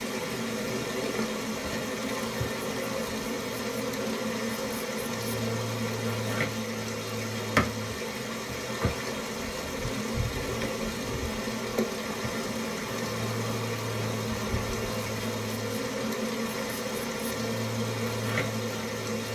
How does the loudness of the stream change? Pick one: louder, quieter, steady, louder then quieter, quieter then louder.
steady.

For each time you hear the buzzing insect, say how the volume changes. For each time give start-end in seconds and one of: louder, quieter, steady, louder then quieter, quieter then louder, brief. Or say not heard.
0.0-19.2 steady.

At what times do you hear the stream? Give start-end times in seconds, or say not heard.
0.0-19.2.